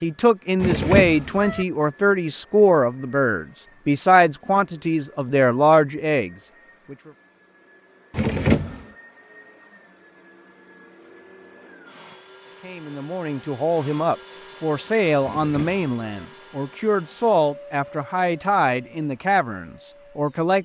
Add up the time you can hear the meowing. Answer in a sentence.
You can hear the meowing for 3 seconds altogether.